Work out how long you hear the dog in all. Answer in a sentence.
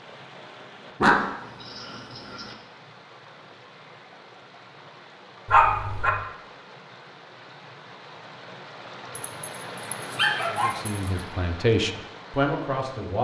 The dog can be heard for 4 seconds in total.